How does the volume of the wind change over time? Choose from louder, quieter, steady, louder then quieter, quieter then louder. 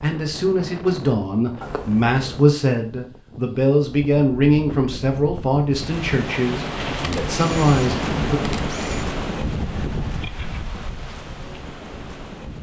louder then quieter.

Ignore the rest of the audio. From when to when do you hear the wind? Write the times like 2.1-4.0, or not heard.
0.0-12.5.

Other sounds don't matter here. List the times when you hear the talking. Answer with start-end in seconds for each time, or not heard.
0.0-8.4.